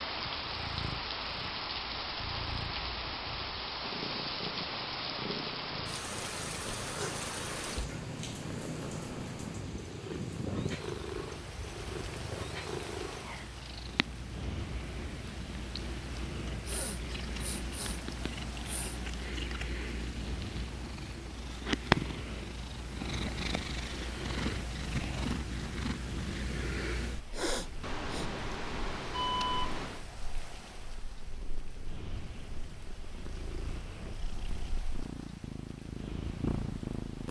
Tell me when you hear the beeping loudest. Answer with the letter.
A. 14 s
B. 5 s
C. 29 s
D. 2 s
C.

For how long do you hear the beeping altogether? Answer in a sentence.
The beeping can be heard for 2 seconds in total.